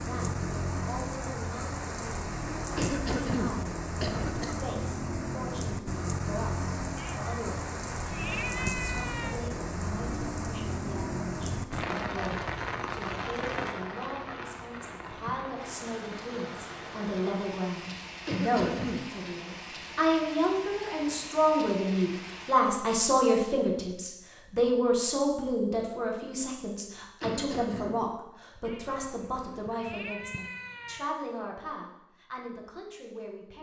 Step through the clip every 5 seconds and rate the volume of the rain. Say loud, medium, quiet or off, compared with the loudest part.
loud, loud, loud, medium, medium, off, off.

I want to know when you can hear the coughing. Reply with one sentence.
You can hear the coughing from 2.8 to 4.5 s, from 18.2 to 19.1 s and from 27.2 to 28.1 s.